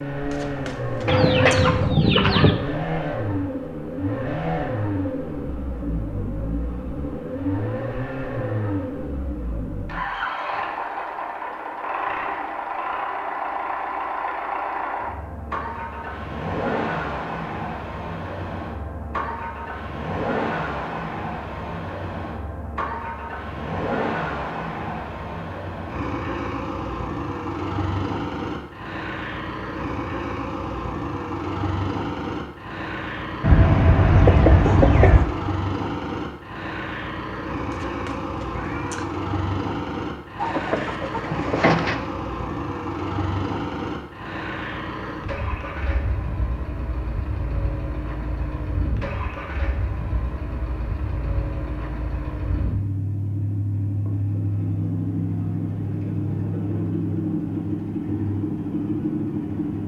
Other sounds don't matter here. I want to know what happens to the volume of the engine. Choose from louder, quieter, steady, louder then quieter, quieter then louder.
steady.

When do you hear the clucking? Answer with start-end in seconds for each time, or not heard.
1.1-2.5, 33.4-35.2, 40.4-42.0.